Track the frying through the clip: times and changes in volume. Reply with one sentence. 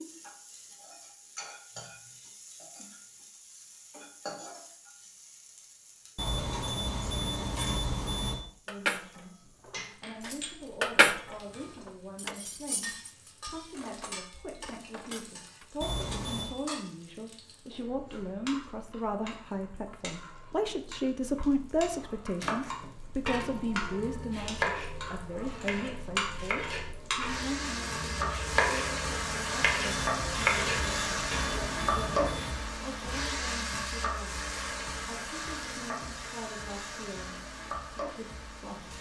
The frying can be heard from 0.0 to 38.9 s, getting louder.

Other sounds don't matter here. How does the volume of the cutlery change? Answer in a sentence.
The loudness of the cutlery goes up, then down.